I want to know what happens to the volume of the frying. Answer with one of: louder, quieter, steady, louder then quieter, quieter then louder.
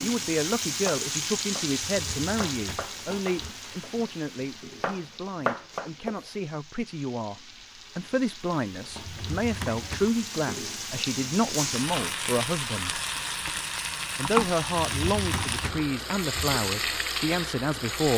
quieter then louder.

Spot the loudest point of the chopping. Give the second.
6 s.